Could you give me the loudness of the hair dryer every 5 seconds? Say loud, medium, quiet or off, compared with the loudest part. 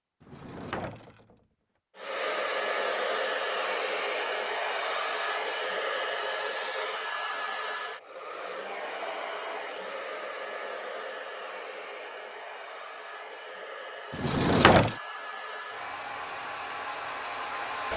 loud, loud, medium, medium.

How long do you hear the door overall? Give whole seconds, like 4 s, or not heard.
2 s.